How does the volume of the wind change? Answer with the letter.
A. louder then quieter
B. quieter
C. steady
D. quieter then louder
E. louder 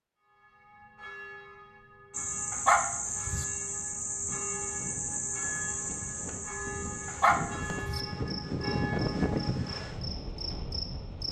A.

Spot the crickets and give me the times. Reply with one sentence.
The crickets can be heard from 2.1 to 11.2 s.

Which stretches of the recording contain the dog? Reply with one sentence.
You can hear the dog from 2.5 to 3.5 s and from 7.0 to 8.0 s.